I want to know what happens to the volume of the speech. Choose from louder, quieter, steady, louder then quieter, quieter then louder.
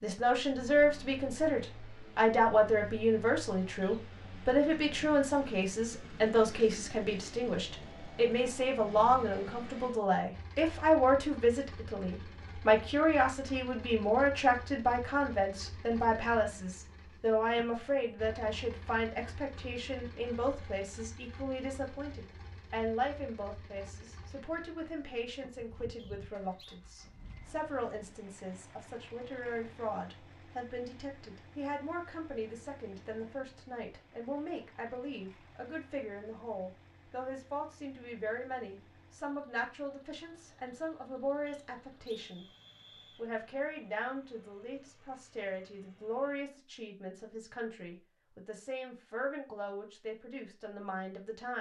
quieter.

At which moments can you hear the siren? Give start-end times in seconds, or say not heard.
not heard.